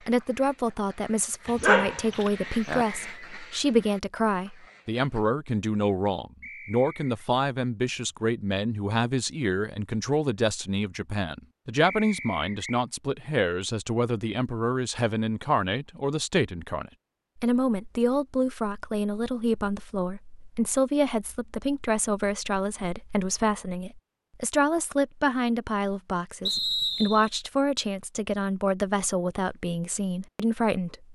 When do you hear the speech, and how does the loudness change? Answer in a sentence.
You can hear the speech from 0.1 to 31.1 s, at a steady volume.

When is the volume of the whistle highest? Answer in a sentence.
The volume of the whistle peaks at 27 seconds.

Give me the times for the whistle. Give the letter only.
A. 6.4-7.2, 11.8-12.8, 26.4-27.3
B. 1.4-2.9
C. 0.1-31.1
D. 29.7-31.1
A.